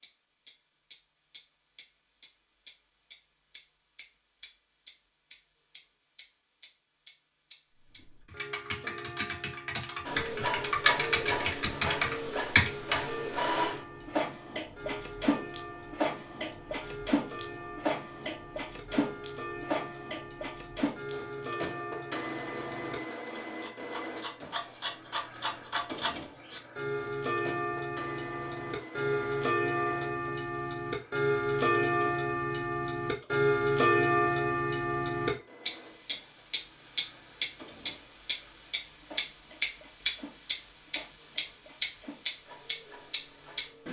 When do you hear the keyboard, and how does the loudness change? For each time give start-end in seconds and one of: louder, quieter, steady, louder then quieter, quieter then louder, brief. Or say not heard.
7.8-13.0 louder.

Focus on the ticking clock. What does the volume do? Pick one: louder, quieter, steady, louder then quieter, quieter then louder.
louder.